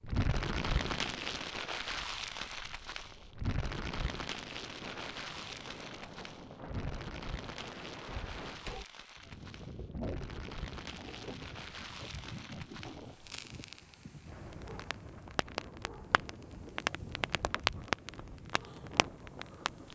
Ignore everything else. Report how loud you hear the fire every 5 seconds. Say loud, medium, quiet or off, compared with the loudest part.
loud, medium, medium, loud.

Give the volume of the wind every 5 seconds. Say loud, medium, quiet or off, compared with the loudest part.
medium, loud, loud, medium.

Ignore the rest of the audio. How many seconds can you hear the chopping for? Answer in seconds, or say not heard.
not heard.